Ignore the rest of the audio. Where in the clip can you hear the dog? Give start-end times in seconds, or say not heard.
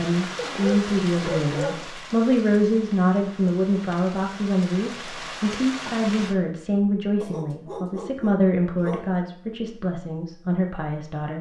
0.3-1.9, 7.2-9.2.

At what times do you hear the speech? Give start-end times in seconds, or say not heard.
0.0-11.3.